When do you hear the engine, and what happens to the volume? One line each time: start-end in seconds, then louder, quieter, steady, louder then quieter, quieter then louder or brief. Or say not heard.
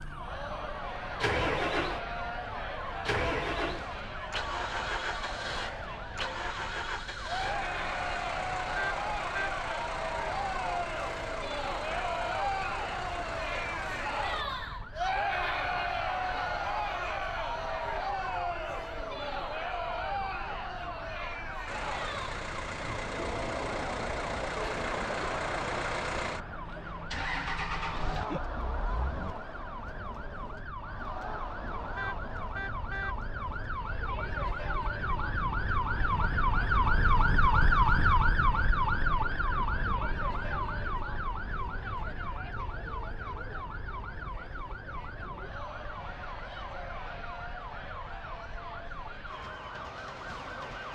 0.0-14.4 quieter
21.6-29.4 steady.